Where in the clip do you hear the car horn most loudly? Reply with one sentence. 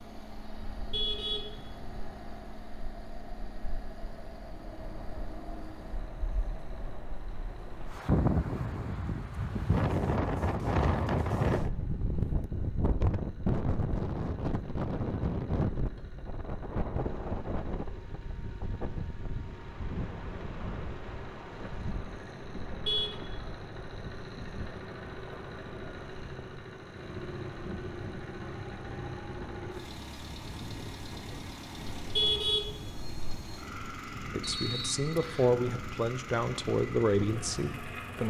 The loudest moment of the car horn is at 32 seconds.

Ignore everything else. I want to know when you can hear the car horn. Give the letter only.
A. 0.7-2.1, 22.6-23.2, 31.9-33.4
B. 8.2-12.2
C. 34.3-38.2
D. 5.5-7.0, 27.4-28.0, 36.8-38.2
A.